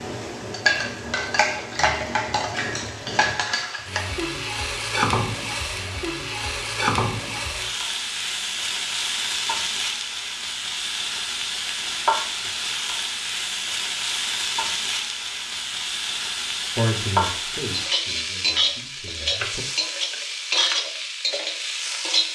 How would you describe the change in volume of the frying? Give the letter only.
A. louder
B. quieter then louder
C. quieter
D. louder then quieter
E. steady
E.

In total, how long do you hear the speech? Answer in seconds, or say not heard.
3 s.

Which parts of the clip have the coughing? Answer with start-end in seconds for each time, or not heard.
not heard.